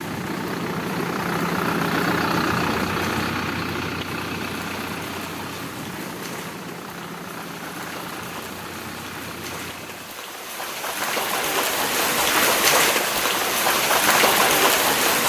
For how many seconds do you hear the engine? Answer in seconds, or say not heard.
10 s.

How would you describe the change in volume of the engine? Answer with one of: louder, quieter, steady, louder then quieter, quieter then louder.
quieter.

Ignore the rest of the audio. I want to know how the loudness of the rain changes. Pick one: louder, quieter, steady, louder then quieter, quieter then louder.
louder.